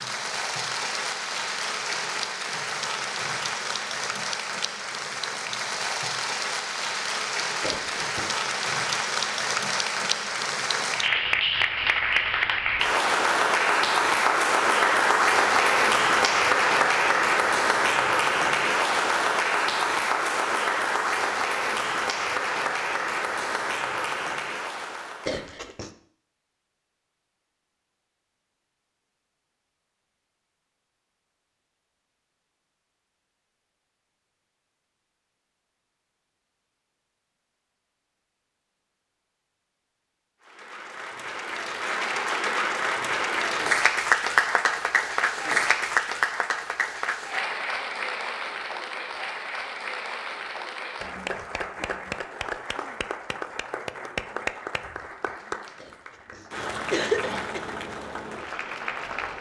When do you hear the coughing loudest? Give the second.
57 s.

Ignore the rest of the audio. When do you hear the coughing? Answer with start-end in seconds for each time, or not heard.
7.6-8.3, 25.2-25.9, 55.8-57.6.